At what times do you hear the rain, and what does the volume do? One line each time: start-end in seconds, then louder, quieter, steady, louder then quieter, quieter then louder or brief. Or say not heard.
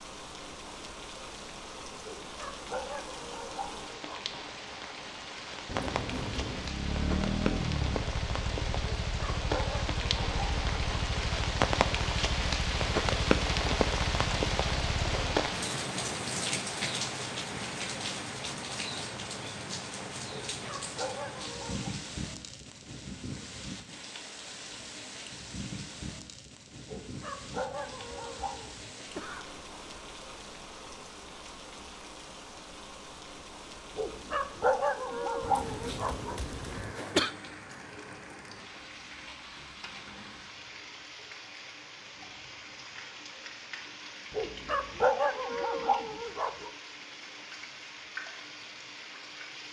0.0-49.6 louder then quieter.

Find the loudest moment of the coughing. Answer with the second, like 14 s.
37 s.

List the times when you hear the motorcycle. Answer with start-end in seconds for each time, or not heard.
6.5-15.4.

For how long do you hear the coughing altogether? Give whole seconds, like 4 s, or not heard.
5 s.